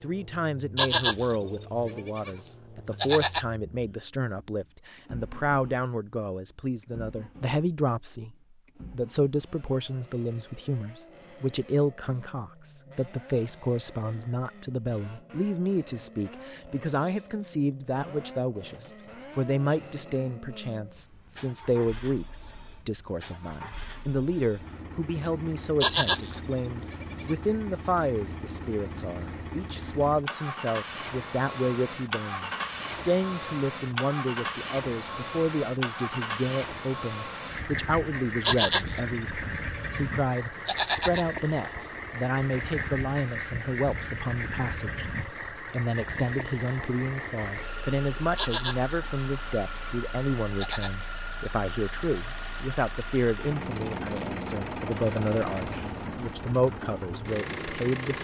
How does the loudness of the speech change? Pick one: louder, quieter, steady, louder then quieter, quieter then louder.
steady.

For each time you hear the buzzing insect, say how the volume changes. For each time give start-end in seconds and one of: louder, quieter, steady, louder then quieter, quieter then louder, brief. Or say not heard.
not heard.